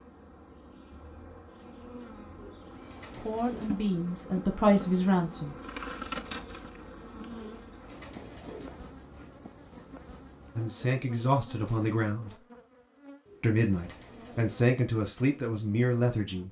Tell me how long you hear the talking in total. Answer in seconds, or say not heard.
7 s.